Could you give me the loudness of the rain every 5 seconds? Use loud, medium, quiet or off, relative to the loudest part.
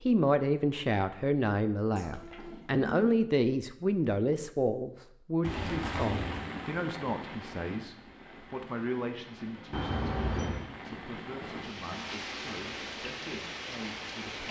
off, loud, loud.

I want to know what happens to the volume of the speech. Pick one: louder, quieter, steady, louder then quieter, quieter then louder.
quieter.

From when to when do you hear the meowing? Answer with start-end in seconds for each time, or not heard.
1.9-2.9, 5.4-6.5, 9.7-10.7.